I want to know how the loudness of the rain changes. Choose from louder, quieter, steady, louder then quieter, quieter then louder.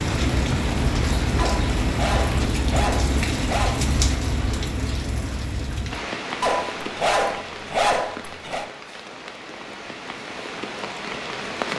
quieter.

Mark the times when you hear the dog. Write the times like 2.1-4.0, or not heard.
1.4-3.8, 6.4-8.7.